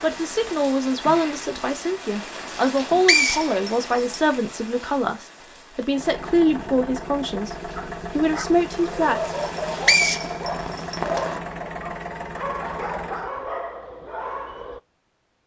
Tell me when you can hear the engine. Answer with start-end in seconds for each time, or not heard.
5.8-13.3.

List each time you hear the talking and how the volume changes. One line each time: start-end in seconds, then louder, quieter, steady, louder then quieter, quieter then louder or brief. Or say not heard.
0.0-9.2 steady.